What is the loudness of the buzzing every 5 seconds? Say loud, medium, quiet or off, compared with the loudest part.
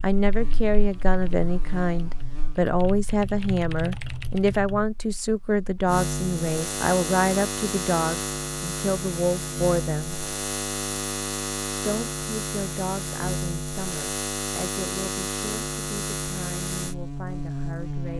quiet, loud, loud, loud.